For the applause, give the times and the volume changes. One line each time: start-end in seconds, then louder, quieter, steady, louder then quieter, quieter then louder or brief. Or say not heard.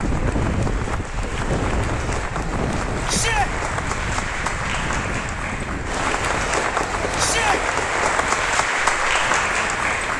0.0-10.1 louder.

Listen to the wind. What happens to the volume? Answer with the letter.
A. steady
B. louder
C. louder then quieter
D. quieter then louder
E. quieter
E.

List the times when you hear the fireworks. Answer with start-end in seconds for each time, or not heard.
not heard.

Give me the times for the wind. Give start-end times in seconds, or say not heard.
0.0-10.1.